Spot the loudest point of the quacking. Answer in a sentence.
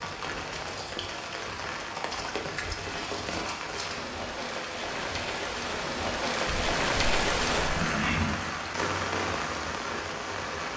The volume of the quacking peaks at 8 seconds.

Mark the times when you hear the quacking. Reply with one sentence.
You can hear the quacking from 6.5 to 8.4 s.